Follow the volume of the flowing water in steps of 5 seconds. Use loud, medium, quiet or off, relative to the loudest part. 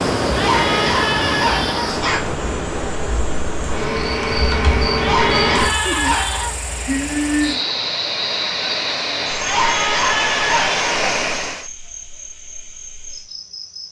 loud, medium, loud.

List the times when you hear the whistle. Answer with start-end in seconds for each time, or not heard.
not heard.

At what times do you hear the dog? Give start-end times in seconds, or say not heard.
0.3-2.2, 5.0-6.6, 9.4-11.0.